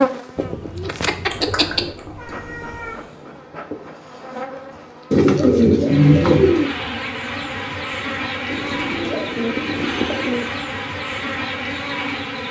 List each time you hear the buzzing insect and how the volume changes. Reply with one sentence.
The buzzing insect can be heard from 0.0 to 12.4 s, getting louder.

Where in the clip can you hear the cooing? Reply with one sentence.
The cooing can be heard from 0.3 to 1.9 s, from 5.1 to 6.7 s and from 8.5 to 10.5 s.